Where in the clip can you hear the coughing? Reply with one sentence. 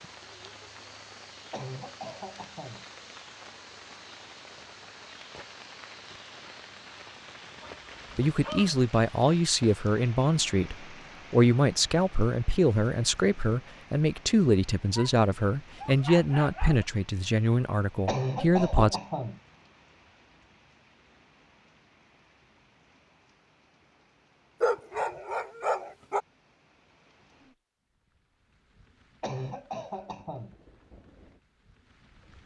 You can hear the coughing from 1.5 to 2.9 s, from 18.1 to 19.4 s and from 29.2 to 30.6 s.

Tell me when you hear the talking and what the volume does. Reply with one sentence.
You can hear the talking from 8.2 to 19.0 s, at a steady volume.